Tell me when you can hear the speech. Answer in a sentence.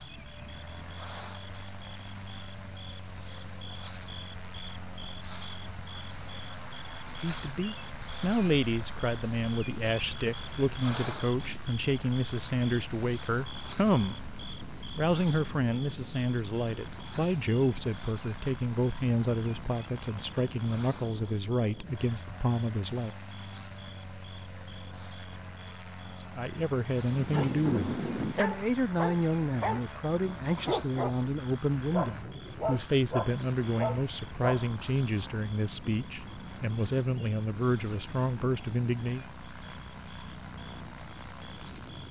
The speech can be heard from 7.2 to 23.1 s and from 26.2 to 39.2 s.